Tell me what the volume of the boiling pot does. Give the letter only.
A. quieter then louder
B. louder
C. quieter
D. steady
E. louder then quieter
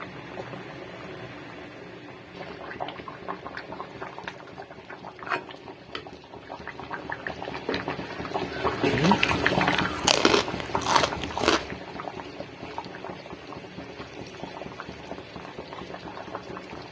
E.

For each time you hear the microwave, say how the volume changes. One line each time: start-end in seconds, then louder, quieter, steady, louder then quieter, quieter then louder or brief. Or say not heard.
not heard.